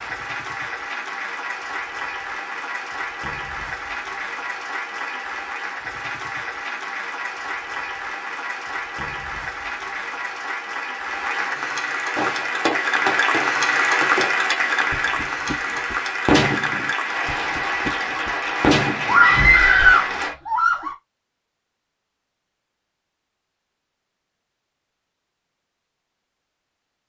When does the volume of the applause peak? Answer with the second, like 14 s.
14 s.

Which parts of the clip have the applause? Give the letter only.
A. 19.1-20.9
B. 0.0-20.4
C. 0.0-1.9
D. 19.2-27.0
B.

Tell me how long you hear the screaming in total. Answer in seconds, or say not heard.
2 s.